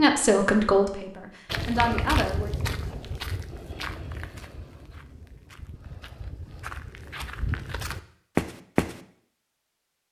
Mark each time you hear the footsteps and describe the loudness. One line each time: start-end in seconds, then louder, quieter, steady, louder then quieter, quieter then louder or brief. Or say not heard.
1.4-9.0 quieter then louder.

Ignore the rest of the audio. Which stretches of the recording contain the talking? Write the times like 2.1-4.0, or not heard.
0.0-2.5.